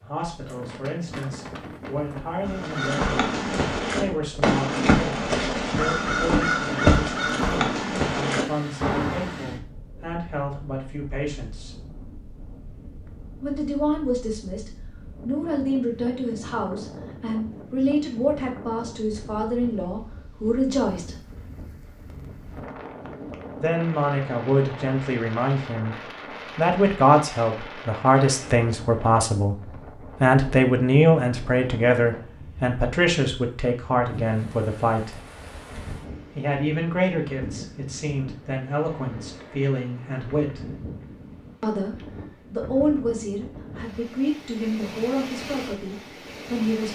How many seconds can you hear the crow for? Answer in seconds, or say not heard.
7 s.